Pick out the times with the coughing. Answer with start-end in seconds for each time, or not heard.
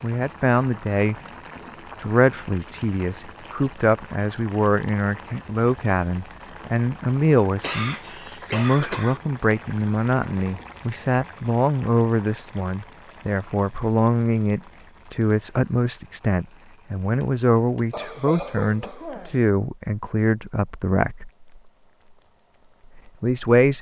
7.6-9.2, 17.9-19.4.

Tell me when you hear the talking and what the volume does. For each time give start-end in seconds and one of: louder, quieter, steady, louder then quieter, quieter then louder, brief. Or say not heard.
0.0-21.3 steady
23.2-23.7 brief.